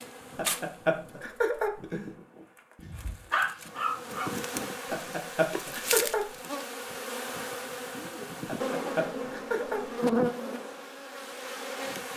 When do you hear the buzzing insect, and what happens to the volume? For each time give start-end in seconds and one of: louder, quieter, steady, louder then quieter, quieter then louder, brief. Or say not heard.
0.0-12.1 louder.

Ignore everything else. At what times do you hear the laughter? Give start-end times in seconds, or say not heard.
0.3-2.0, 4.9-6.3, 8.4-10.2.